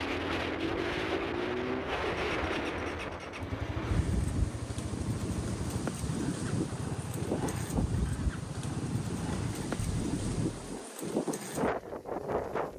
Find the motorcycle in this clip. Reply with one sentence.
You can hear the motorcycle from 0.0 to 10.8 s.